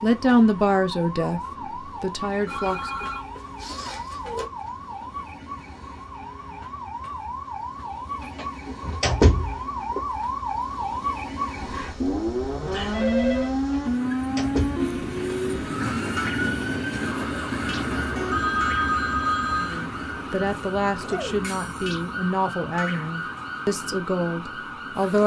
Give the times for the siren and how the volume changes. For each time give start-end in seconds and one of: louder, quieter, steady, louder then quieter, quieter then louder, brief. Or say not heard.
0.0-25.2 louder then quieter.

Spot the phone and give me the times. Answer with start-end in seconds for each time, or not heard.
2.5-4.5, 11.6-13.6, 18.1-19.8.